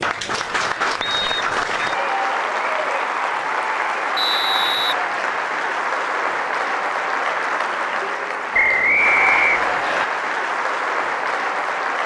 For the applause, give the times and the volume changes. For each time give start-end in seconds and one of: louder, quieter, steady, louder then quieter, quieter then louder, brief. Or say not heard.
0.0-12.0 steady.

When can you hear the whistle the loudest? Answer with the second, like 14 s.
9 s.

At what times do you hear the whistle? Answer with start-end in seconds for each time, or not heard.
1.0-1.9, 4.2-5.0, 8.5-10.1.